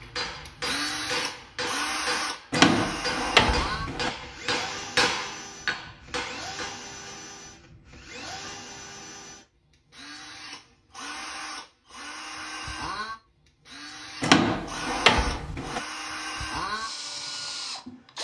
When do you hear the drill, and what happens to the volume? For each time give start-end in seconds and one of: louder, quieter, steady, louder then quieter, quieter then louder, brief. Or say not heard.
0.0-18.1 quieter then louder.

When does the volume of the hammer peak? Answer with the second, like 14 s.
5 s.